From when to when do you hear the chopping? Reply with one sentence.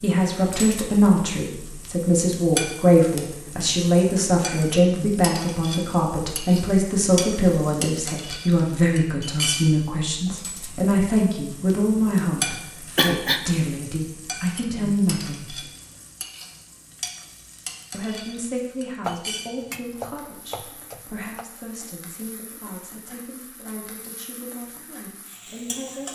The chopping can be heard from 19.0 to 21.4 s.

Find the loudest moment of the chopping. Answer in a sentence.
The volume of the chopping peaks at 19 seconds.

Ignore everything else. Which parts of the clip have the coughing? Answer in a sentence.
The coughing can be heard from 12.9 to 13.5 s.